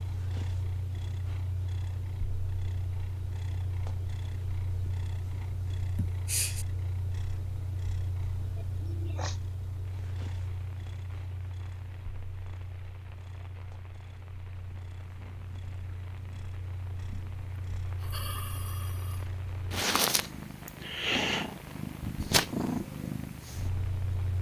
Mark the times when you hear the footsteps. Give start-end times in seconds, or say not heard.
not heard.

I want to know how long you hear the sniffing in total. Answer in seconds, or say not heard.
3 s.